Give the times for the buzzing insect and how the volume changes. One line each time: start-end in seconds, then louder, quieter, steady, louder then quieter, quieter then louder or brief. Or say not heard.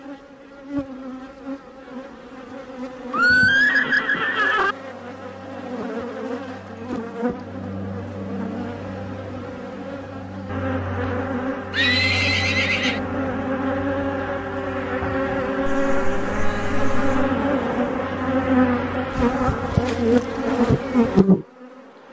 0.0-21.8 louder.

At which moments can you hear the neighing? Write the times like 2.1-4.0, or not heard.
3.1-4.8, 11.7-13.0, 15.7-17.3.